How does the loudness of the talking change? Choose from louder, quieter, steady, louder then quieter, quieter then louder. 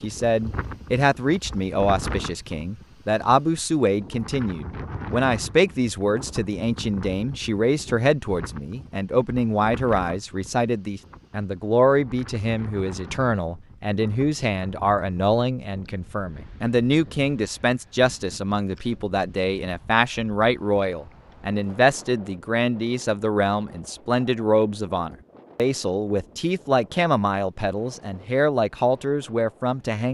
steady.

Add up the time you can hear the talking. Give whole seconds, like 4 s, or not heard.
30 s.